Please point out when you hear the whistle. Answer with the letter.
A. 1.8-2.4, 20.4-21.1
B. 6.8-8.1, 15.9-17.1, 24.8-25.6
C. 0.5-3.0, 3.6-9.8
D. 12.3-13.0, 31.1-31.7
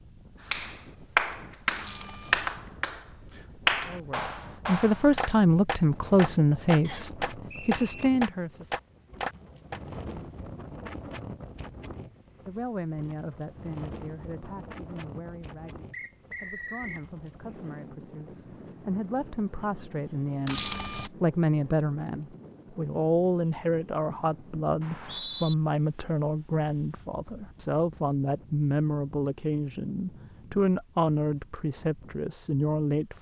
B.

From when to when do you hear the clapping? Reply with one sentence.
The clapping can be heard from 0.5 to 3.0 s and from 3.6 to 9.8 s.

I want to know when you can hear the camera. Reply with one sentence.
The camera can be heard from 1.8 to 2.4 s and from 20.4 to 21.1 s.